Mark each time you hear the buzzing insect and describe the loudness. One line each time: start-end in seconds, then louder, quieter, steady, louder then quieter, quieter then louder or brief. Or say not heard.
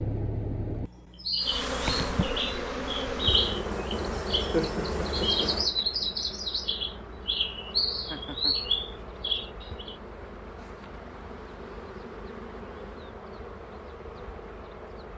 1.4-15.1 quieter.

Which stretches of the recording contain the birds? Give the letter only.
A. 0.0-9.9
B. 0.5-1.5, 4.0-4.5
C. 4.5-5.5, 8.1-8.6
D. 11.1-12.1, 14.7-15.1
A.